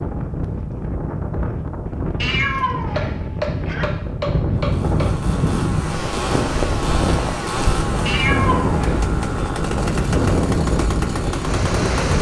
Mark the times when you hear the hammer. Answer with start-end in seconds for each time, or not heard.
3.0-5.1.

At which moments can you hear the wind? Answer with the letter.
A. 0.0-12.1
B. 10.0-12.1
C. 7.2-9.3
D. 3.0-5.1
A.